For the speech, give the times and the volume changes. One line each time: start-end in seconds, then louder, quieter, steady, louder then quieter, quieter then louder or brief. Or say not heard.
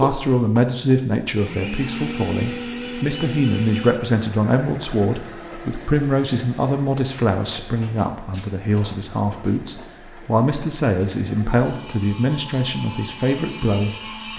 0.0-14.3 steady.